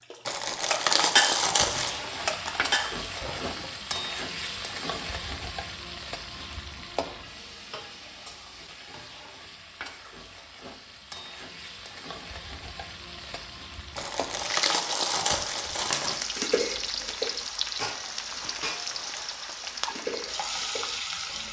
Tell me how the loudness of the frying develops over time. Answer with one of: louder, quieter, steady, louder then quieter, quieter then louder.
quieter then louder.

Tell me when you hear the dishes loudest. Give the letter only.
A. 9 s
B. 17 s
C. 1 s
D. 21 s
C.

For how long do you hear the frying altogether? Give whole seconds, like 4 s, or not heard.
20 s.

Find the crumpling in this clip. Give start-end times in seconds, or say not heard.
0.2-2.0, 13.9-16.2.